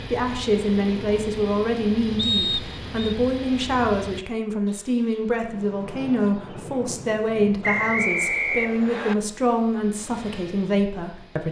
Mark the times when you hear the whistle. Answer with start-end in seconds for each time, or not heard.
2.1-3.1, 7.6-9.2.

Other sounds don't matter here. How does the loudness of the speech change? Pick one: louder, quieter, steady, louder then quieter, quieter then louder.
steady.